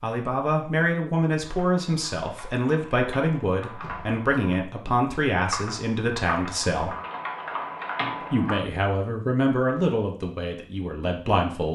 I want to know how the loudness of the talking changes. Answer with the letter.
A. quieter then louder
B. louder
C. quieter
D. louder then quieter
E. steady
E.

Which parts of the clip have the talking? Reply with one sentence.
You can hear the talking from 0.0 to 7.0 s and from 8.3 to 11.6 s.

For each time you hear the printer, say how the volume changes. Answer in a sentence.
The printer can't be heard in this clip.